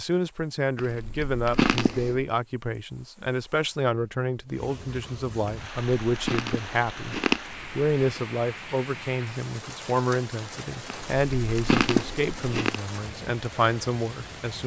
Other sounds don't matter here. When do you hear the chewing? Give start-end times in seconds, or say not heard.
0.8-2.2, 5.5-8.2, 11.1-12.8.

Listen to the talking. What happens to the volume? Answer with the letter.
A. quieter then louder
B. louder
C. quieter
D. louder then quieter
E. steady
E.